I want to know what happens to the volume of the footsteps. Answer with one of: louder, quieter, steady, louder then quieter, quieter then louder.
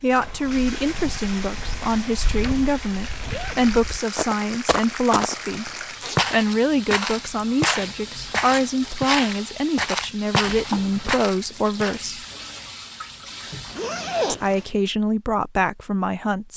louder.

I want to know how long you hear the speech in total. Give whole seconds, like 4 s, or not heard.
14 s.